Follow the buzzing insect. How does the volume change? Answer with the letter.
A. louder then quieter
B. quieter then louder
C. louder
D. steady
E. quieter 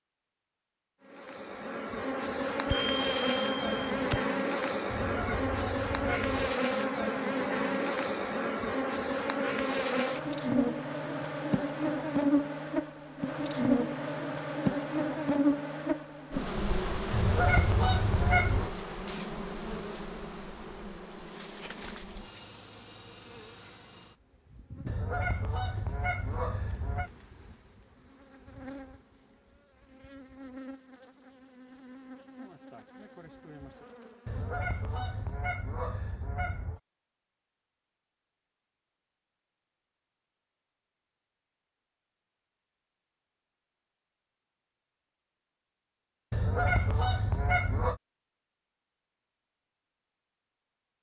E.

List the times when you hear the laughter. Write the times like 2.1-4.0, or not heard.
not heard.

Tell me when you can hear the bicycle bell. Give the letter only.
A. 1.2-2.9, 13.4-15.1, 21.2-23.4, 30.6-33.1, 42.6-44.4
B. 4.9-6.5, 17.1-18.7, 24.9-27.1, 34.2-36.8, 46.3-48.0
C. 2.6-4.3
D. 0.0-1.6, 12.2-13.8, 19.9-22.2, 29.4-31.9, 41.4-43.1
C.